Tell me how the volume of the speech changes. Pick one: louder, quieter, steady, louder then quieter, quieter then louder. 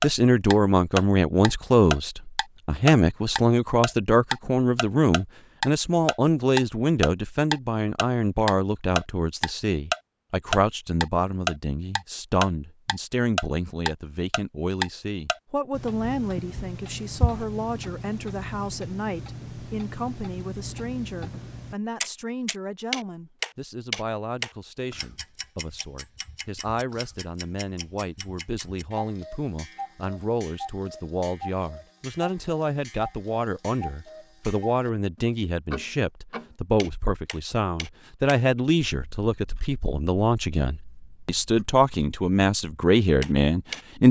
quieter then louder.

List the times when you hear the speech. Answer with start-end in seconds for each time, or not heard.
0.0-44.0.